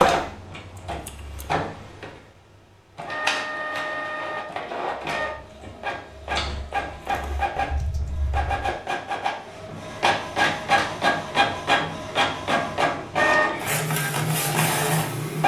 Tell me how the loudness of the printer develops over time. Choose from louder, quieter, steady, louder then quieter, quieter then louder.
louder.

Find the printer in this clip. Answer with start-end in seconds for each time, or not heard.
0.0-15.4.